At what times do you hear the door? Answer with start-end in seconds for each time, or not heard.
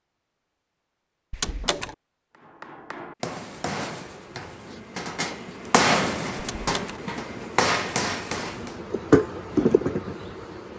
1.3-1.9, 6.3-7.0.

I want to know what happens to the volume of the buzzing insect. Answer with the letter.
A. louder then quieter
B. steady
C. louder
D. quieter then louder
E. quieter
C.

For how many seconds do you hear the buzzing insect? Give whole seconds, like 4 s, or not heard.
7 s.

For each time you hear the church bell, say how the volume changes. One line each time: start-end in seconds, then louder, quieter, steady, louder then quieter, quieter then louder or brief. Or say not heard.
not heard.